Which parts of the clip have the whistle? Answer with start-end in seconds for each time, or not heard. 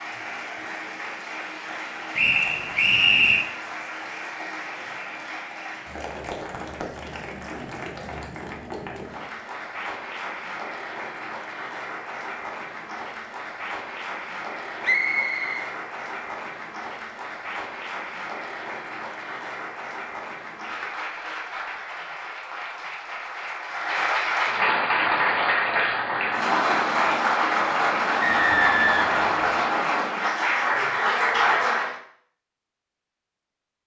2.1-3.5, 14.8-15.7, 28.2-29.7.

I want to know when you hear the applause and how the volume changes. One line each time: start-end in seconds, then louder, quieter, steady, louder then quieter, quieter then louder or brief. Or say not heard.
0.0-31.9 louder.